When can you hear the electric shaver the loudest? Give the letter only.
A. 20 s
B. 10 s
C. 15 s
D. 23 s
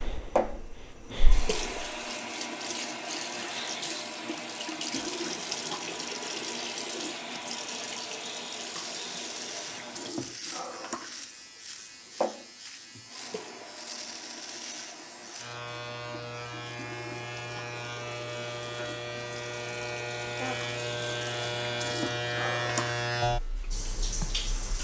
D.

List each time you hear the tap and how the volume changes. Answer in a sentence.
The tap can be heard from 0.0 to 24.8 s, getting quieter then louder.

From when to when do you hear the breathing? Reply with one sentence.
You can hear the breathing from 0.0 to 1.6 s.